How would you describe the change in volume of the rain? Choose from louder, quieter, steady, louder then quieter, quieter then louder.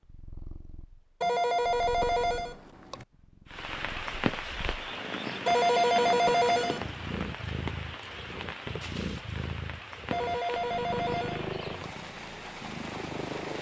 quieter.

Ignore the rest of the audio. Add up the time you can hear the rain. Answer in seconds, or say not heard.
10 s.